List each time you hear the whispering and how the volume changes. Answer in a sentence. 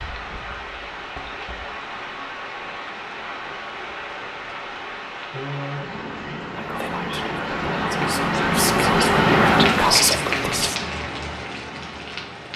You can hear the whispering from 6.5 to 10.8 s, getting louder.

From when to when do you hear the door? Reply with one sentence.
You can't hear the door here.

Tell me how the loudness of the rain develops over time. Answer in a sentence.
The loudness of the rain goes up, then down.